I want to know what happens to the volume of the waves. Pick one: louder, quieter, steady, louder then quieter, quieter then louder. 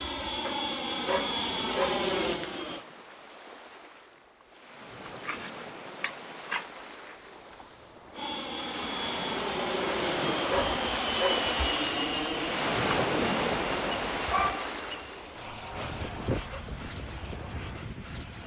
louder then quieter.